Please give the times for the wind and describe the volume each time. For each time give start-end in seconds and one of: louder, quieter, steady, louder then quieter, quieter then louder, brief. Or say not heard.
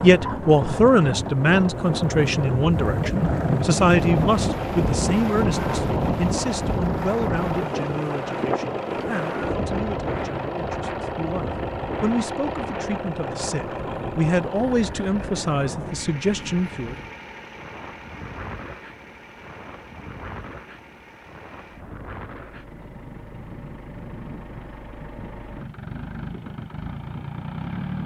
0.0-28.0 quieter.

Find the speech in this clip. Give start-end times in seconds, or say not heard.
0.0-16.9.